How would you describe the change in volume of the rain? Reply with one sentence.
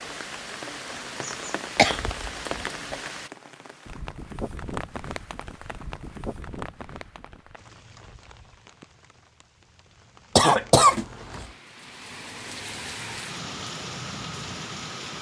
The loudness of the rain goes down, then up.